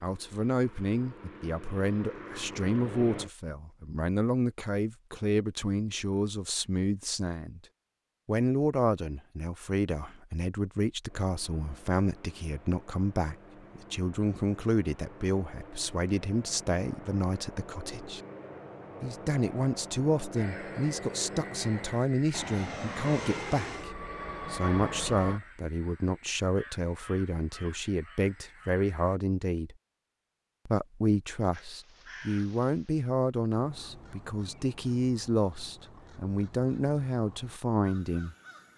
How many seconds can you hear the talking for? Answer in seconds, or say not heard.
36 s.